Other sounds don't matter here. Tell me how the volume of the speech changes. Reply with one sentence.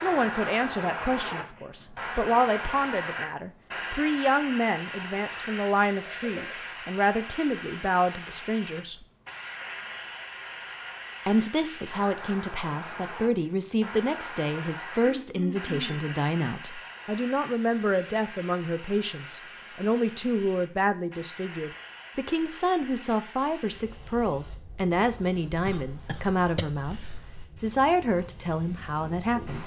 The loudness of the speech stays about the same.